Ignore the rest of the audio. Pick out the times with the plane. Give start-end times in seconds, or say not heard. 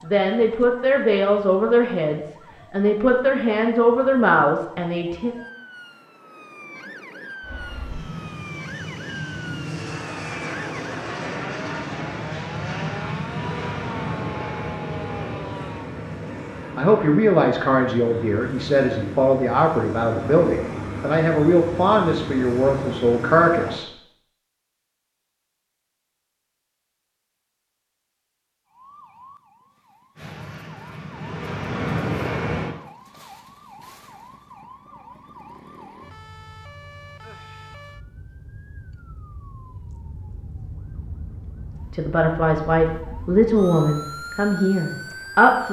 7.4-23.8, 30.1-32.8.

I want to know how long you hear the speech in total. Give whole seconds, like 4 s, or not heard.
16 s.